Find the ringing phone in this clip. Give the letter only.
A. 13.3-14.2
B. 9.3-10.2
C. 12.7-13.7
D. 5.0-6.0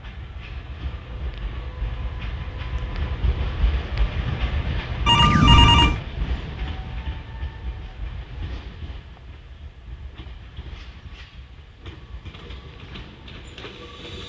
D.